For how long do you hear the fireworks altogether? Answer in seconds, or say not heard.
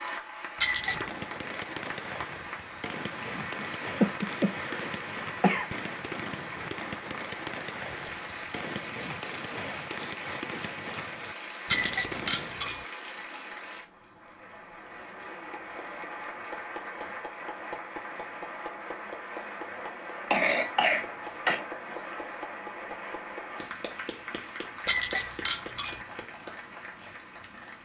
12 s.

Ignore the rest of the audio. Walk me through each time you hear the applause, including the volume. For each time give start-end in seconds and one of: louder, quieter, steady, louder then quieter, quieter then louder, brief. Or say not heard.
0.0-27.8 steady.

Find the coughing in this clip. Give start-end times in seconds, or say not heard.
4.0-5.7, 20.3-21.6.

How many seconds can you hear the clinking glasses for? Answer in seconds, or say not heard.
3 s.